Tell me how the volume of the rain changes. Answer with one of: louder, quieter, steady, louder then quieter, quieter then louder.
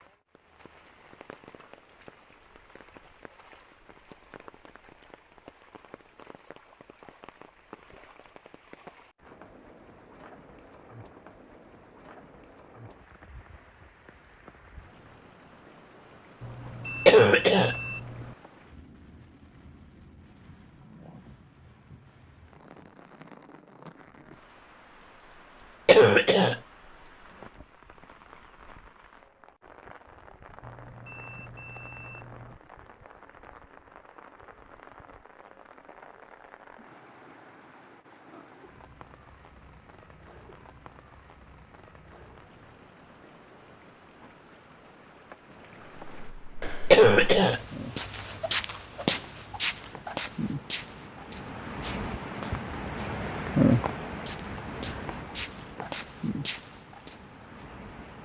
louder.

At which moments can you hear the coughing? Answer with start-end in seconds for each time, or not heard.
17.1-17.8, 25.9-26.6, 46.9-47.6.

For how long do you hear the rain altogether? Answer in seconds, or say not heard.
58 s.